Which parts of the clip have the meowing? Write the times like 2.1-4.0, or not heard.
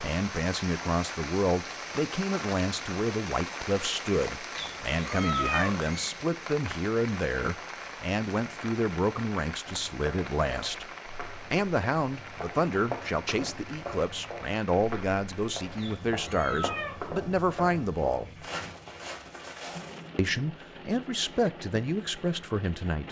4.5-6.2, 15.8-17.0.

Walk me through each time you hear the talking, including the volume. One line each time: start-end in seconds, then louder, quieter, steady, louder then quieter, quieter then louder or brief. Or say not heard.
0.0-18.4 steady
20.1-23.0 brief.